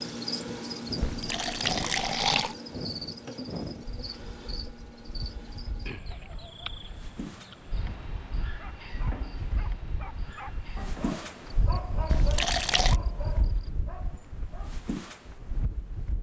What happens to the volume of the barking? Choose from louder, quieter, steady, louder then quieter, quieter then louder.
louder then quieter.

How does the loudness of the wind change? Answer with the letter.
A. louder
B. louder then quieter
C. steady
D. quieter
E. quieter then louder
E.